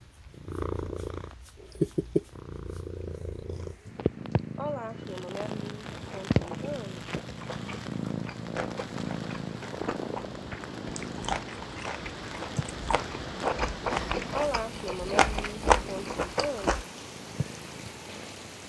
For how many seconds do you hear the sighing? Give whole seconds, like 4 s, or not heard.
5 s.